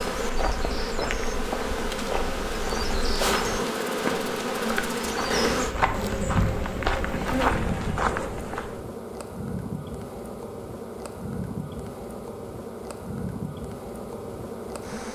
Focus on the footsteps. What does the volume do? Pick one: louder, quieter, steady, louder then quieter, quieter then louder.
louder.